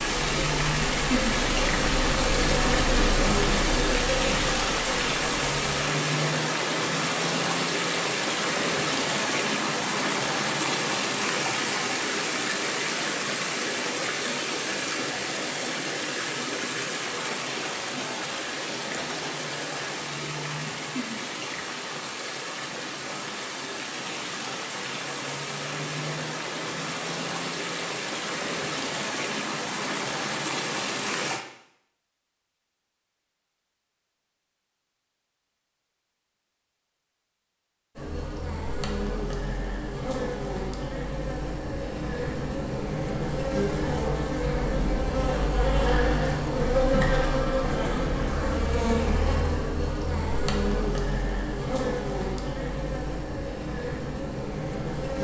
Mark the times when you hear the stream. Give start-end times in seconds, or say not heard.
0.0-31.4.